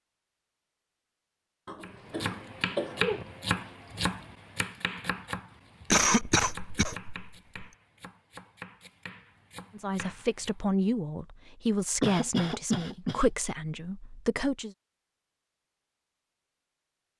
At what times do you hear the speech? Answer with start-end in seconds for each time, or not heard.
9.8-14.8.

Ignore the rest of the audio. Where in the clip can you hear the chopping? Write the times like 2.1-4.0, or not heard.
1.8-10.6.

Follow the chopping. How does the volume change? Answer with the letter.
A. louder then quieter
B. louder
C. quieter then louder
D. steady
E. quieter
E.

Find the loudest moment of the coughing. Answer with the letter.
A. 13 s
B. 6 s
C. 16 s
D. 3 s
B.